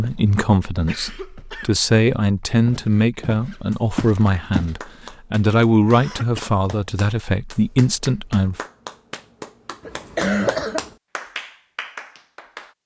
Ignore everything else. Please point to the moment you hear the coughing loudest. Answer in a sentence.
The loudest moment of the coughing is at 10 seconds.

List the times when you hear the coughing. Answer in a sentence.
The coughing can be heard from 0.8 to 1.8 s, from 5.9 to 6.5 s and from 9.8 to 10.9 s.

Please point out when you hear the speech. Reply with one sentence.
The speech can be heard from 0.0 to 8.6 s.